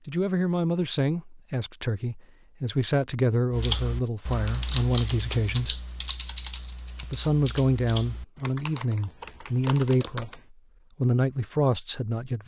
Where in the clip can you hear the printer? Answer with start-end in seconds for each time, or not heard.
not heard.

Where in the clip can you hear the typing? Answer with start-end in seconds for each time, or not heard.
3.5-10.4.